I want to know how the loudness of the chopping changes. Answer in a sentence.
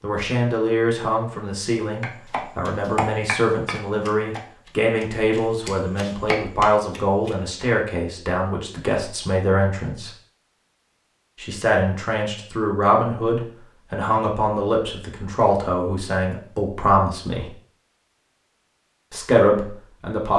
The volume of the chopping goes down, then up.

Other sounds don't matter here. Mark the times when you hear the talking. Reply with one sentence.
You can hear the talking from 0.0 to 10.1 s, from 11.4 to 17.5 s and from 19.1 to 20.3 s.